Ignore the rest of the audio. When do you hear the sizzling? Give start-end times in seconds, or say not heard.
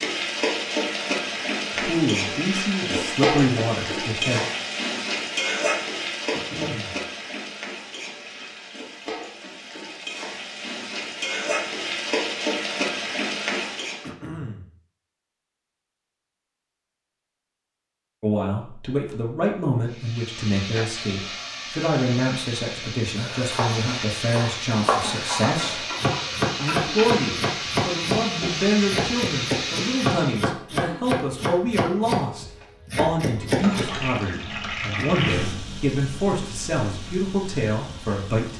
0.0-14.1, 19.9-30.4, 33.4-38.5.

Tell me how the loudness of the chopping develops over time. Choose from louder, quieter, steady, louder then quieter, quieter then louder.
steady.